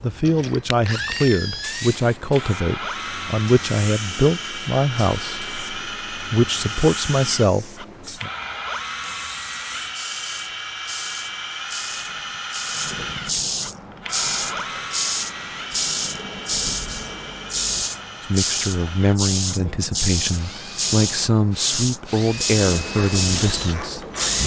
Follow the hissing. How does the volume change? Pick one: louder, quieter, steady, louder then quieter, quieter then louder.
louder.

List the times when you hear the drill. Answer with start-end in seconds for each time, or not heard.
0.1-24.4.